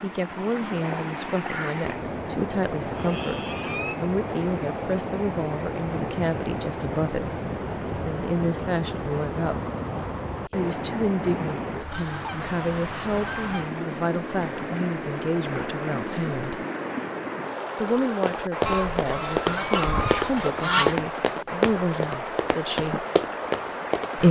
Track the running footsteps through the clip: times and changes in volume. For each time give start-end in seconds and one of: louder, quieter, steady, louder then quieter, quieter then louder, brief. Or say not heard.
17.9-24.2 steady.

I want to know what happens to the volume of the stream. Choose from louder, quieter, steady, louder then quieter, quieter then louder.
steady.